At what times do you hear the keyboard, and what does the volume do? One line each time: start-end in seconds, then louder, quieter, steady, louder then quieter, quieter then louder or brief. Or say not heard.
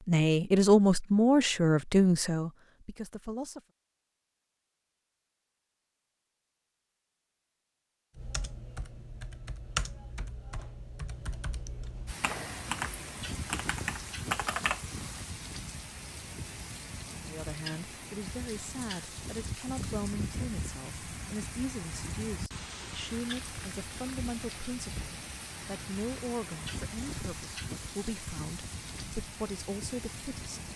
8.2-15.2 quieter then louder.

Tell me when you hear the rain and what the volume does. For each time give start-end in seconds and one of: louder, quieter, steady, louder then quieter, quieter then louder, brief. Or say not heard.
12.1-30.7 steady.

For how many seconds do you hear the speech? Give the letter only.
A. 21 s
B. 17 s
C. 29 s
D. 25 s
B.